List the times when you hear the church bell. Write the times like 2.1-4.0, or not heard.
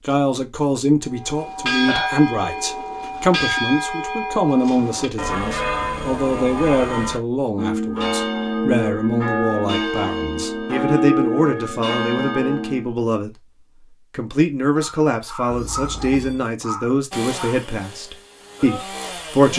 1.1-12.9.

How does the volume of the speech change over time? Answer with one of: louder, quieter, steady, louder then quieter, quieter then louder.
steady.